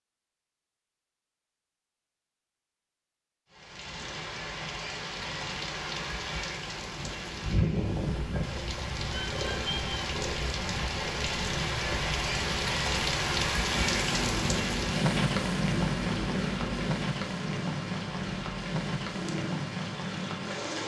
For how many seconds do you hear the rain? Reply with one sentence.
You can hear the rain for 17 seconds altogether.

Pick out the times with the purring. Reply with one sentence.
You can hear the purring from 7.9 to 20.8 s.